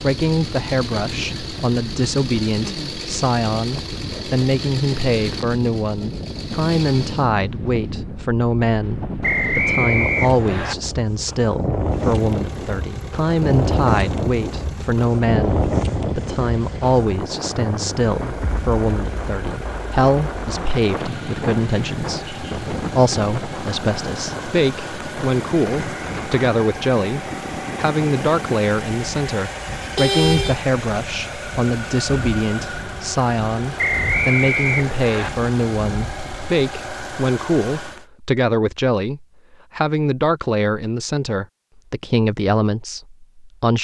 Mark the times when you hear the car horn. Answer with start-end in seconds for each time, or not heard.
29.8-30.6.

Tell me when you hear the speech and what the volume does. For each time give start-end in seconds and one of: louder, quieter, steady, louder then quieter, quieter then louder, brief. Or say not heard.
0.0-43.8 steady.